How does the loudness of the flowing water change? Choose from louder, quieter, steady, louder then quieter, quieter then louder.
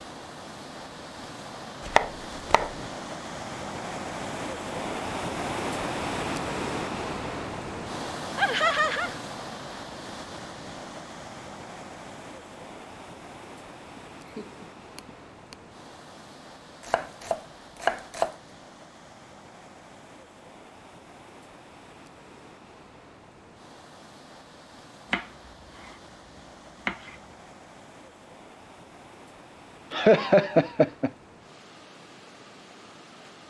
quieter.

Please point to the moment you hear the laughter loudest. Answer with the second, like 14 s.
30 s.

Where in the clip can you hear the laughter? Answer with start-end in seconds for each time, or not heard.
8.3-9.2, 13.9-15.6, 29.9-31.1.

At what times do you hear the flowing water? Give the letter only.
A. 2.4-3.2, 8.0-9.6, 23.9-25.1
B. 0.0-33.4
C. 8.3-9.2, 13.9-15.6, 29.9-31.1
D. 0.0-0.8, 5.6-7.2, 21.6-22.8
B.